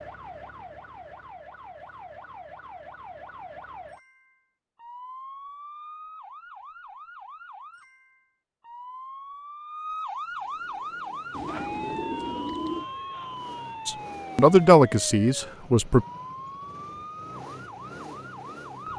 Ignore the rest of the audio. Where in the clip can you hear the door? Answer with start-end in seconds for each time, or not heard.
not heard.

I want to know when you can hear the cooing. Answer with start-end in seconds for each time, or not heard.
11.3-12.8.